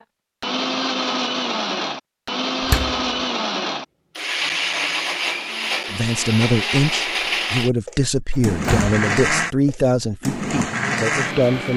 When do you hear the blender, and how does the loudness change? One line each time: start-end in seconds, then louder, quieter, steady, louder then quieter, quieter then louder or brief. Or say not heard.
0.4-11.7 steady.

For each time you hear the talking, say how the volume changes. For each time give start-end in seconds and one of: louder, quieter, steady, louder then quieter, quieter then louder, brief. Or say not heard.
5.9-11.7 quieter.